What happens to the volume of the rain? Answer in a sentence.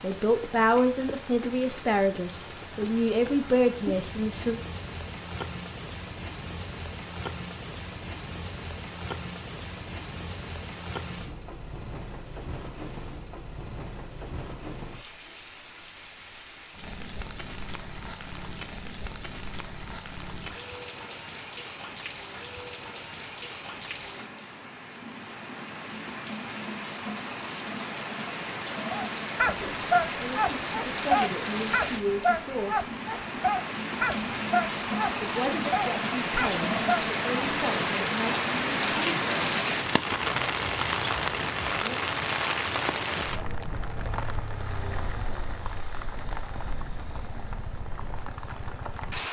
The volume of the rain goes up.